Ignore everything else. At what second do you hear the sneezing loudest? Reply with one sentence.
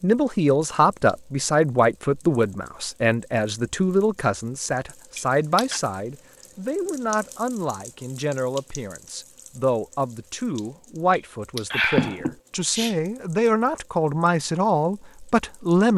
The volume of the sneezing peaks at 12 seconds.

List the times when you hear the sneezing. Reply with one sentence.
The sneezing can be heard from 5.2 to 5.8 s and from 11.2 to 12.9 s.